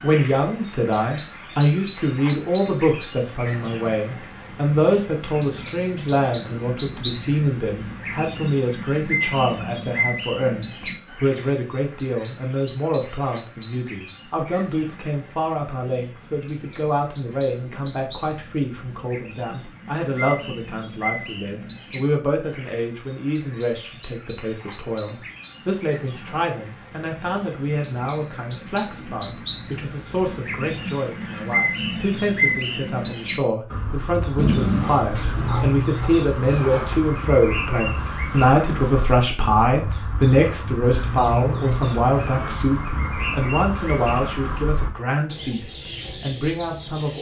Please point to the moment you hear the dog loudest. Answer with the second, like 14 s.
35 s.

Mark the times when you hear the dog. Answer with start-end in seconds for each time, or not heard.
34.4-37.0.